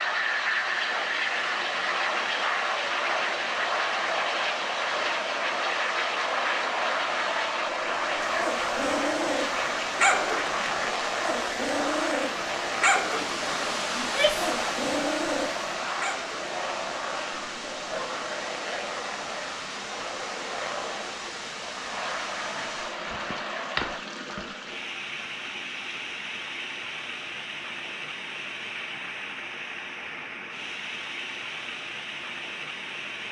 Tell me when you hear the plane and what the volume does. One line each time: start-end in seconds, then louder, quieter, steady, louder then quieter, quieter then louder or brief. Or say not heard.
0.0-24.0 quieter.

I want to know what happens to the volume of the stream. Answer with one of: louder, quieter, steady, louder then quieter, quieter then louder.
steady.